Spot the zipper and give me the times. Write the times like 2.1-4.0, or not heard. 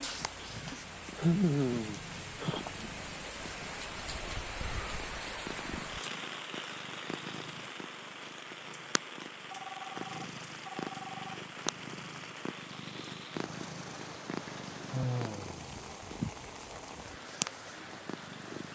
not heard.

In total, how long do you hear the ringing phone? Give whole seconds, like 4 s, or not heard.
2 s.